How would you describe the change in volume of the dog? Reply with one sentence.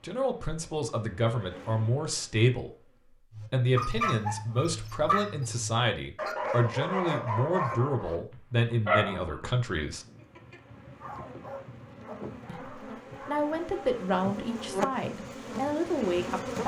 The volume of the dog goes down.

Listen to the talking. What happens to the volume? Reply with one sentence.
The loudness of the talking stays about the same.